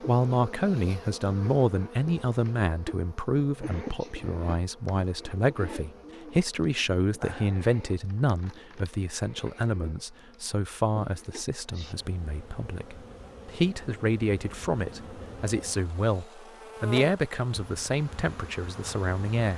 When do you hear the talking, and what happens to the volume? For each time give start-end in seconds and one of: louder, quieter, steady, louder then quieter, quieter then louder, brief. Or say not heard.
0.1-19.5 steady.